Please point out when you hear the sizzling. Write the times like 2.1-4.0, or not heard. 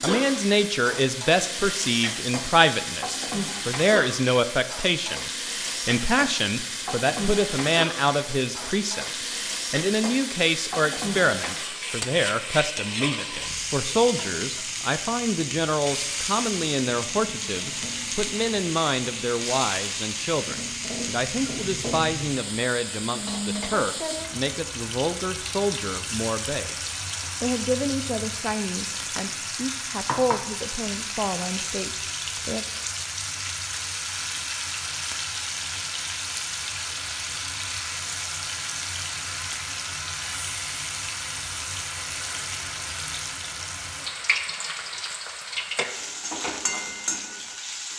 0.0-47.9.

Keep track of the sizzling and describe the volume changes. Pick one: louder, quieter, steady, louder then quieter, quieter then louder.
steady.